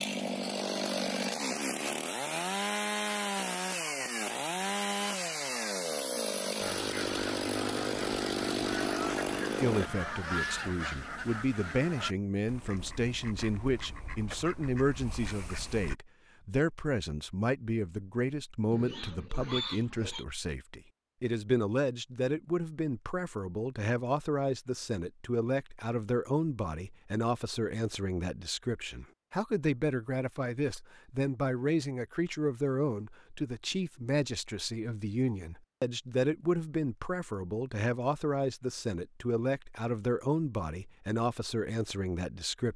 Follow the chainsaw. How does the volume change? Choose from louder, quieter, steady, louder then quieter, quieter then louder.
steady.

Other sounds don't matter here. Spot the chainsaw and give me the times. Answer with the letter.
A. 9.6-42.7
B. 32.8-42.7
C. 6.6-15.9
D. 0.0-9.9
D.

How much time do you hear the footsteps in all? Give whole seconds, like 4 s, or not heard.
not heard.